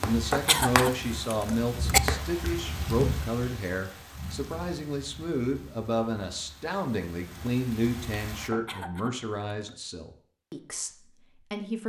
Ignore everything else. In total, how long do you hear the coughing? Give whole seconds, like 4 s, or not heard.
3 s.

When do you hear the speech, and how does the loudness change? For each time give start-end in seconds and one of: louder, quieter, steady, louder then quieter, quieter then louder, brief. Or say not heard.
0.0-11.8 quieter.